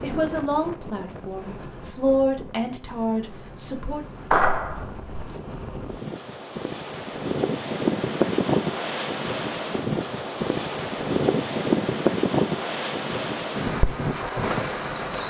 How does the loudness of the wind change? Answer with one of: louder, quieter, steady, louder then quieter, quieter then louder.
louder.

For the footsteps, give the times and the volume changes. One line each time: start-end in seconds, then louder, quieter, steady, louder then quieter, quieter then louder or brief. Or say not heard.
not heard.